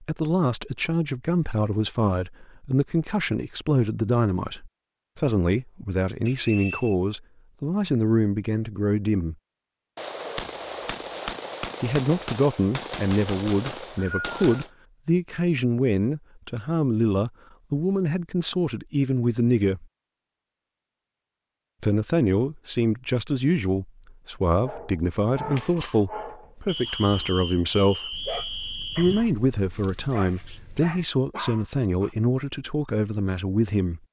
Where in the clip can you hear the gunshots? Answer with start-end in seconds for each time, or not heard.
9.9-14.7.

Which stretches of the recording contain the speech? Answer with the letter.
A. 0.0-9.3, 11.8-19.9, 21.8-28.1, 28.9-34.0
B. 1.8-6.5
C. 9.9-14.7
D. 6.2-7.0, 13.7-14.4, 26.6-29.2
A.